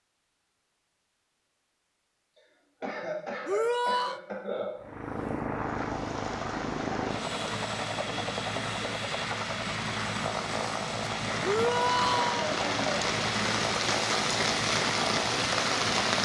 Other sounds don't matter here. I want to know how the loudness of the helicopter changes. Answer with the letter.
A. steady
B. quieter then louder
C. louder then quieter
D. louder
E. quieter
A.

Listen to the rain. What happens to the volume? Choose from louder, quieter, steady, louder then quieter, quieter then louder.
louder.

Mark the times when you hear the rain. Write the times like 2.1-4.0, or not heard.
5.5-16.2.